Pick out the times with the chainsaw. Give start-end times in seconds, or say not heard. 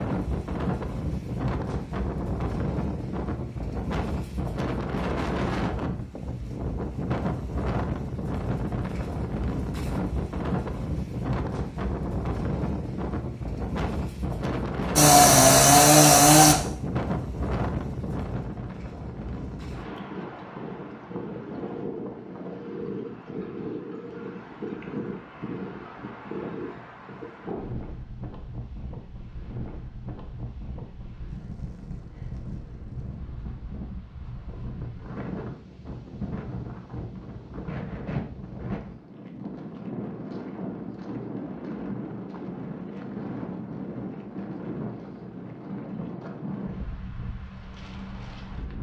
14.9-16.6.